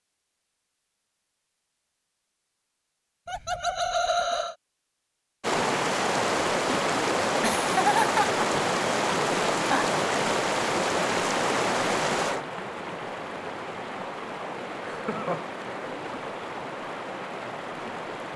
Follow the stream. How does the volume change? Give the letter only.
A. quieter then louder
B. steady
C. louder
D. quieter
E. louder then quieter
D.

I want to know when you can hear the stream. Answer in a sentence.
The stream can be heard from 5.4 to 18.3 s.